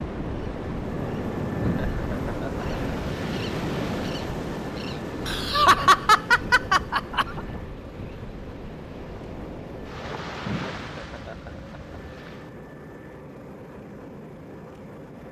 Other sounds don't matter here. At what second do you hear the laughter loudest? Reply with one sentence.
The volume of the laughter peaks at 6 seconds.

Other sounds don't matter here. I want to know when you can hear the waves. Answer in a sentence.
You can hear the waves from 0.0 to 12.6 s.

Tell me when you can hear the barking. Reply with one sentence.
You can't hear the barking here.